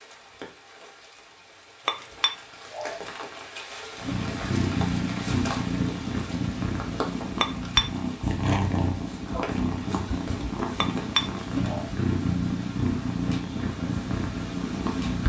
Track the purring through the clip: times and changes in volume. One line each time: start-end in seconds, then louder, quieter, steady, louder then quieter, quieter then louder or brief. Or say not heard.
4.0-15.2 steady.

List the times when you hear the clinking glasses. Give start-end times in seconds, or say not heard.
1.9-3.0, 7.4-7.8, 10.8-11.8.